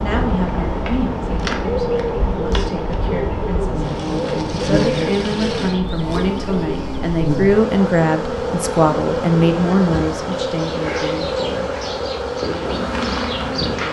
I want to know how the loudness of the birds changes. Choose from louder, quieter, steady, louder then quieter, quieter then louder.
quieter.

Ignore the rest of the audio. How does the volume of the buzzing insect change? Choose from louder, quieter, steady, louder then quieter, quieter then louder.
louder.